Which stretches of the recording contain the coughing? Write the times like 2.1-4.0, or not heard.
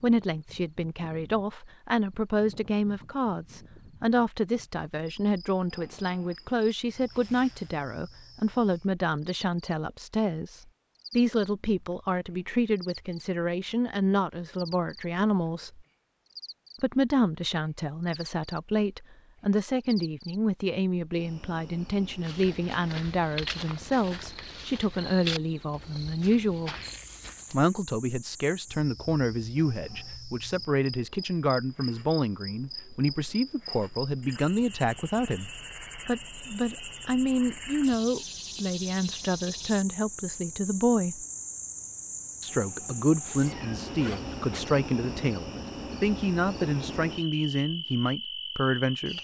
not heard.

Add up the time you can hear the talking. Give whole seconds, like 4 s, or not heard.
46 s.